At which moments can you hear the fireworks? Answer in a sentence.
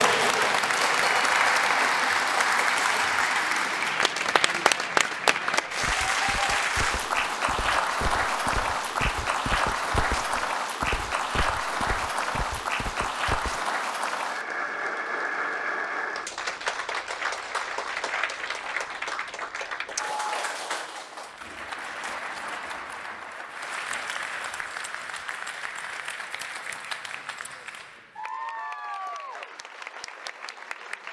You can't hear the fireworks here.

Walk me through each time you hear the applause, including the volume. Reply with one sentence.
The applause can be heard from 0.0 to 31.0 s, getting quieter.